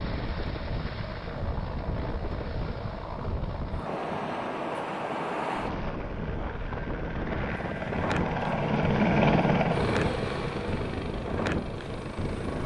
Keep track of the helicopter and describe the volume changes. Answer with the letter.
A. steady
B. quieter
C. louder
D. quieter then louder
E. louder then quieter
E.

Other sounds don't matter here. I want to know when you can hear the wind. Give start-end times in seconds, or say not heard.
0.0-12.6.